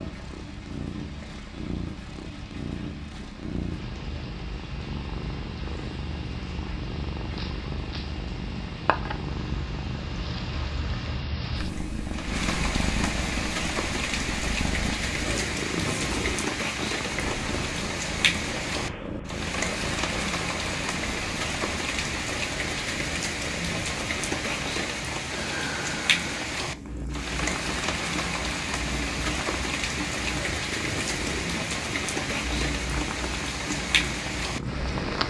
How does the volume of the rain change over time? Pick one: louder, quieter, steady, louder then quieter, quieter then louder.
louder.